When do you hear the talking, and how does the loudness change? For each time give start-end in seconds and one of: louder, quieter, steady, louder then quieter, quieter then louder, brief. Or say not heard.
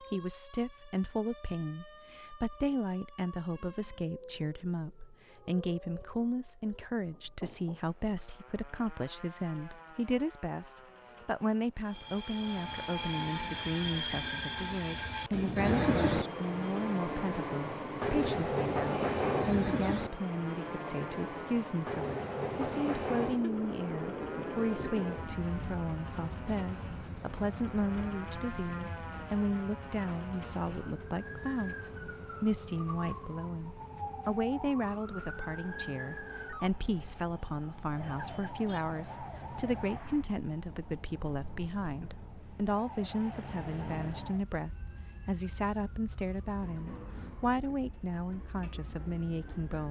0.0-49.8 steady.